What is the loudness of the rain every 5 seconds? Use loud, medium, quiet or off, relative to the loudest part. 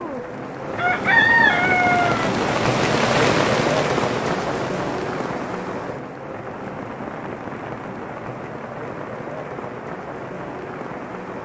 loud, medium, medium.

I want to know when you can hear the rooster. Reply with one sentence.
The rooster can be heard from 0.8 to 2.3 s.